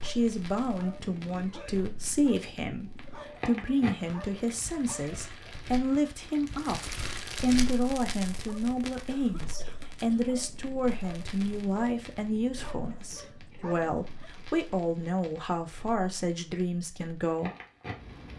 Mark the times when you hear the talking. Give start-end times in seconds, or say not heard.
0.0-17.5.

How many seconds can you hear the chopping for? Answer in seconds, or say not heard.
not heard.